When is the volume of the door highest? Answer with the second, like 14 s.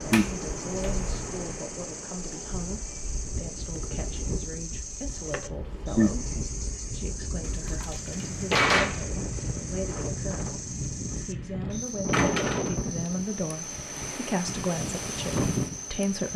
9 s.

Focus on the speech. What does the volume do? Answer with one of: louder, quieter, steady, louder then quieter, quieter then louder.
louder.